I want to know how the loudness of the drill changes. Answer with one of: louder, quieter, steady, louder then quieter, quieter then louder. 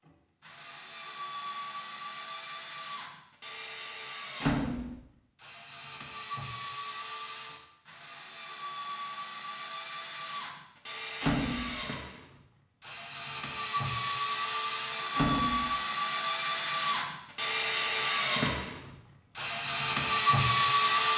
louder.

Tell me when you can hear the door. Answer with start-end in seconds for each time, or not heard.
4.4-5.0, 11.2-11.8, 15.2-15.7.